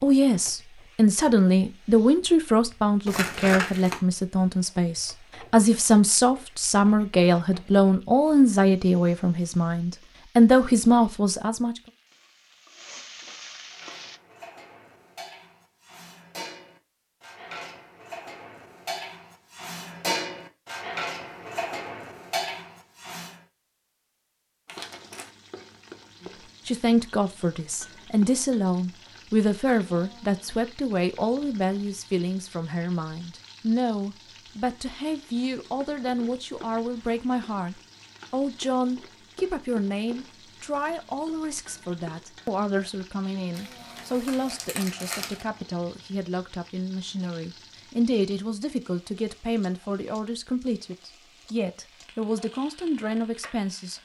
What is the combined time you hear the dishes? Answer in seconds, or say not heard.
10 s.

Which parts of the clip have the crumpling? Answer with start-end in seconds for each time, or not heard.
3.0-4.0, 24.6-25.3, 43.5-45.5.